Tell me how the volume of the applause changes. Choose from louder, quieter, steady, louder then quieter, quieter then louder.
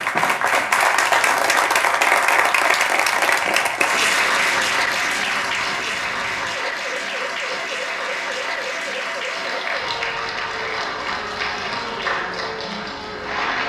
quieter.